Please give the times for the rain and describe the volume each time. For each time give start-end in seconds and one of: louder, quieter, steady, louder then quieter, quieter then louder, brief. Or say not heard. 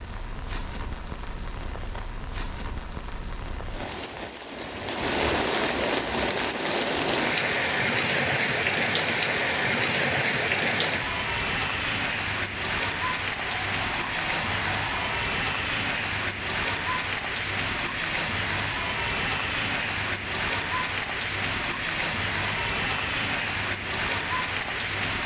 0.0-25.2 louder.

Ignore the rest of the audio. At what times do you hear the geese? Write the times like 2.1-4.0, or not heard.
13.4-15.1.